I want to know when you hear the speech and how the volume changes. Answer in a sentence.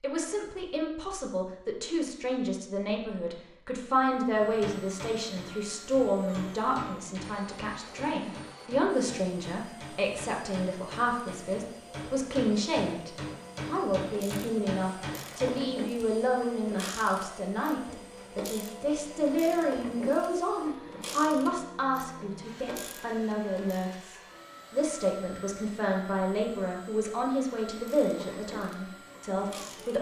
The speech can be heard from 0.0 to 29.9 s, at a steady volume.